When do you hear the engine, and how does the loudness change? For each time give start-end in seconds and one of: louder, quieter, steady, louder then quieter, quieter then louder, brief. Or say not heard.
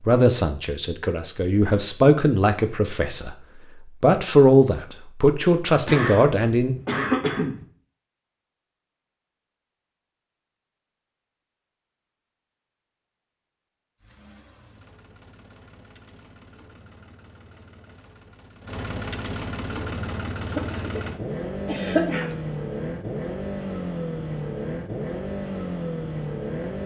14.0-26.8 louder.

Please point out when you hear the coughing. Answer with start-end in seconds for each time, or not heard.
5.8-7.7, 20.4-22.4.